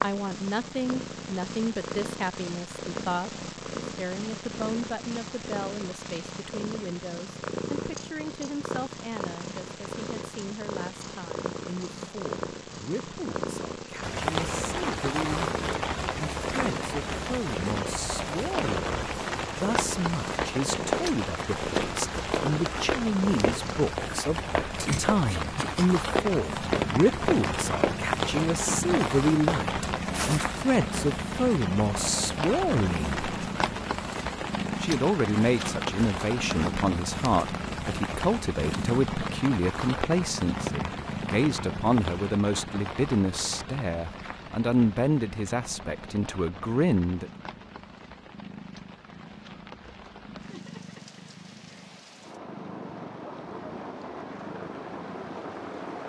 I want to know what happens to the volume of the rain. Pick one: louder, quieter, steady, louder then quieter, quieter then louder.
quieter.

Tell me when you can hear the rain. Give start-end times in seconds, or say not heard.
14.0-56.0.